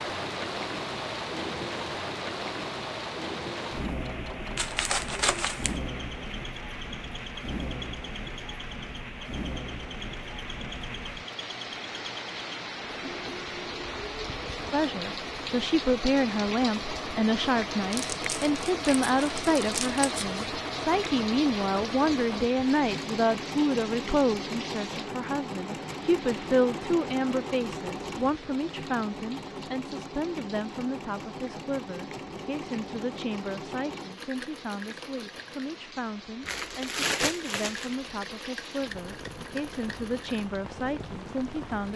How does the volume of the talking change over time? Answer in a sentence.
The volume of the talking goes down.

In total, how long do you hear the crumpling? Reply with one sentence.
You can hear the crumpling for 5 seconds altogether.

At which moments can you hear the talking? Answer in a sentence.
You can hear the talking from 14.7 to 41.9 s.